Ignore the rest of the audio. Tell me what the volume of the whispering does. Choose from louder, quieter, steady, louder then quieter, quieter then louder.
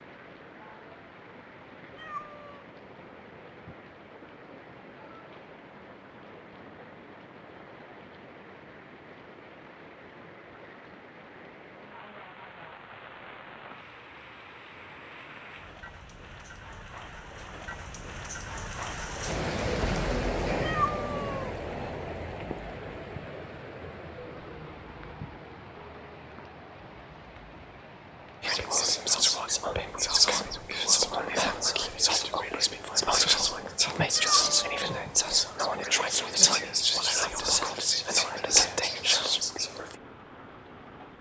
steady.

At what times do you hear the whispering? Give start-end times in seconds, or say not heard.
28.4-40.0.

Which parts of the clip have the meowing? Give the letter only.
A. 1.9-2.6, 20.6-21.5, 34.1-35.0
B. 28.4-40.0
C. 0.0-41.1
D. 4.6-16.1
A.